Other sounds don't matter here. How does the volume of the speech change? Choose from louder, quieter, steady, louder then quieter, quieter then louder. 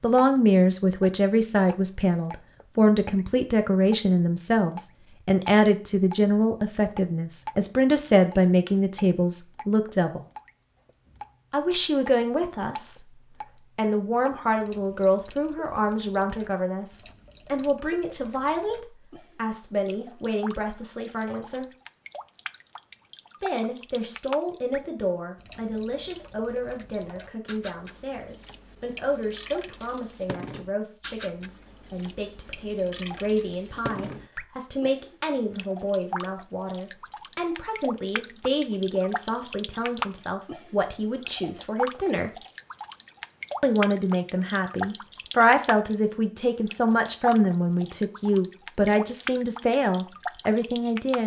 quieter then louder.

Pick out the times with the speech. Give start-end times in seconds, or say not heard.
0.0-10.2, 11.5-21.6, 23.4-42.3, 43.6-51.2.